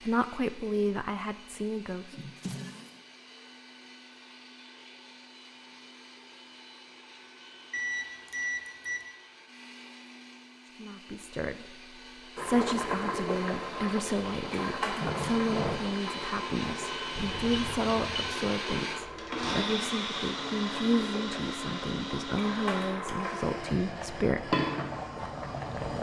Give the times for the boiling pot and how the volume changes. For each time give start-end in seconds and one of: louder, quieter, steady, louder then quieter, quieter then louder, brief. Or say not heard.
12.3-25.9 quieter then louder.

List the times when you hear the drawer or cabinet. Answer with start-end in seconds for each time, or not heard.
2.1-3.0, 15.0-15.8.